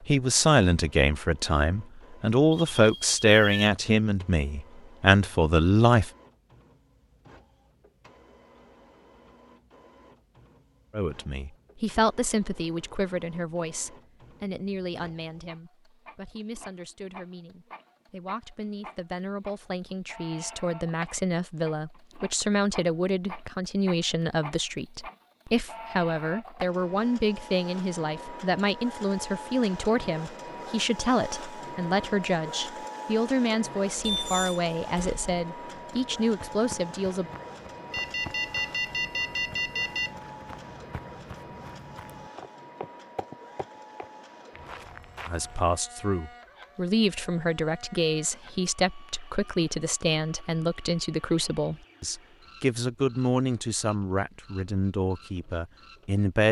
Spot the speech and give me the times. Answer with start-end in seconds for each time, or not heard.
0.1-6.1, 10.9-37.3, 45.2-56.4.